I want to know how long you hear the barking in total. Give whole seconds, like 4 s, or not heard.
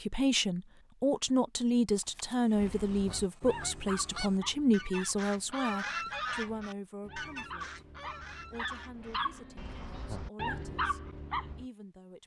9 s.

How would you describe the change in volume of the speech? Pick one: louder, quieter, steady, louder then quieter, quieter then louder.
quieter.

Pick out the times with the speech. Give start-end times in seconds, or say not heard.
0.0-12.2.